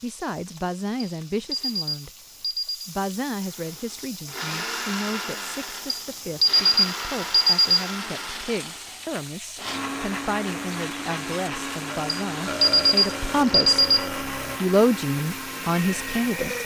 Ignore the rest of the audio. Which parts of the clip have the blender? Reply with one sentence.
The blender can be heard from 3.5 to 16.6 s.